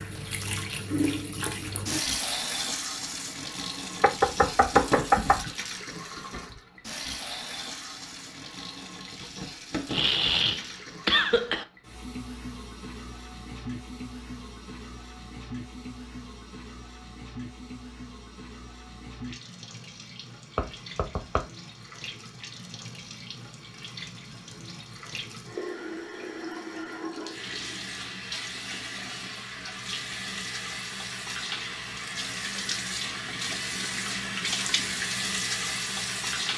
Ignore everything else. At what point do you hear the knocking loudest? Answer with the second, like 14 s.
5 s.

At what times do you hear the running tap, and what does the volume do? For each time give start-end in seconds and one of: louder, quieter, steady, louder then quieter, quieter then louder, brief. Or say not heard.
0.0-36.5 quieter then louder.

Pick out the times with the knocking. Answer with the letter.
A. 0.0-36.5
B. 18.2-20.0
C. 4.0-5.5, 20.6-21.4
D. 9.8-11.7
C.